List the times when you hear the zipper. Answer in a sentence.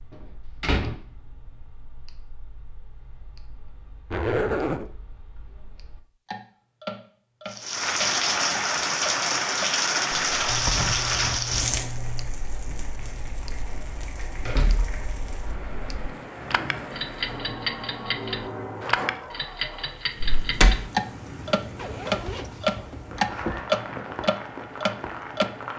You can hear the zipper from 4.1 to 4.9 s, from 10.4 to 12.3 s and from 21.8 to 23.6 s.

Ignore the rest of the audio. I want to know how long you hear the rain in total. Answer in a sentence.
You can hear the rain for 18 seconds altogether.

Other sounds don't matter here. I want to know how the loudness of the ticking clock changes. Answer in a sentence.
The loudness of the ticking clock goes up.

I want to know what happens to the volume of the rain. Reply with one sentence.
The loudness of the rain goes down.